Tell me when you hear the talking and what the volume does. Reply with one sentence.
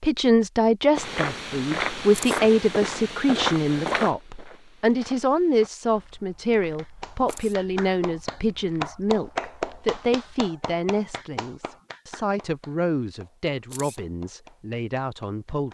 You can hear the talking from 0.0 to 15.6 s, getting quieter.